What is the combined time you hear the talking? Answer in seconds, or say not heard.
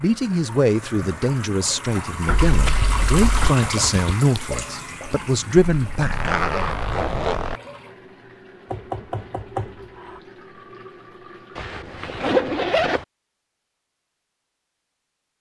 6 s.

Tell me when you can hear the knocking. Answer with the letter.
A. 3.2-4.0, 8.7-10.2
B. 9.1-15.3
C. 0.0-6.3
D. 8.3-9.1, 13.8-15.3
A.